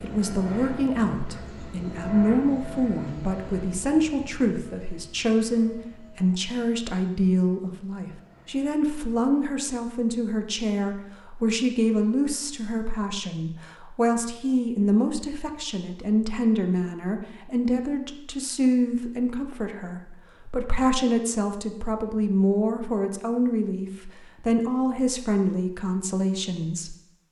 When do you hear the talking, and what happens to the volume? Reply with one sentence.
You can hear the talking from 0.0 to 27.2 s, at a steady volume.